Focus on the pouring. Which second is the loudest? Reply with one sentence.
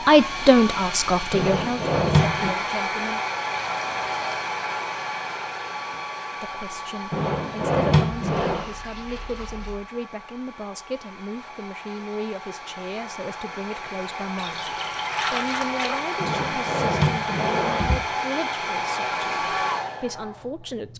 The volume of the pouring peaks at 15 seconds.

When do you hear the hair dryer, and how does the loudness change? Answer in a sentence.
You can hear the hair dryer from 0.0 to 20.9 s, getting quieter then louder.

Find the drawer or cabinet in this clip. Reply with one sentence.
You can hear the drawer or cabinet from 1.3 to 2.5 s, from 7.1 to 8.7 s and from 16.2 to 18.1 s.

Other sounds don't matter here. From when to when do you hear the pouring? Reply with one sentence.
You can hear the pouring from 3.5 to 4.5 s, from 8.3 to 9.8 s and from 14.3 to 16.1 s.